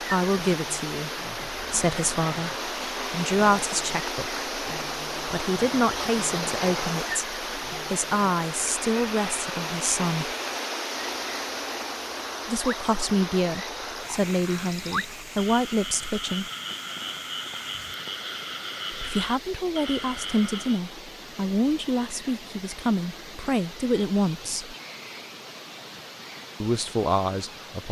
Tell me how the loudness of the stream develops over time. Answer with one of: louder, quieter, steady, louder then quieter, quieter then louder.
quieter.